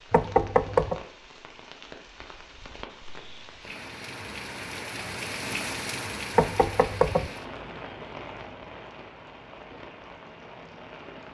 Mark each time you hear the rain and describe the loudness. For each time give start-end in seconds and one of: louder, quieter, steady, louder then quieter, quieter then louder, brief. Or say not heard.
0.0-11.2 louder then quieter.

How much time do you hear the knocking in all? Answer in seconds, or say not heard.
2 s.